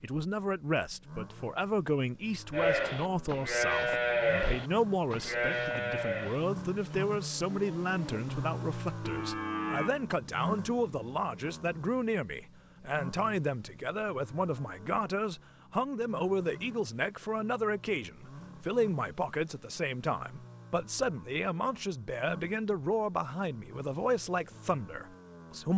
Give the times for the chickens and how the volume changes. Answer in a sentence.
You can't hear the chickens here.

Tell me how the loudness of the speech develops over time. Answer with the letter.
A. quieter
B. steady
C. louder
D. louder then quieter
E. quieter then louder
B.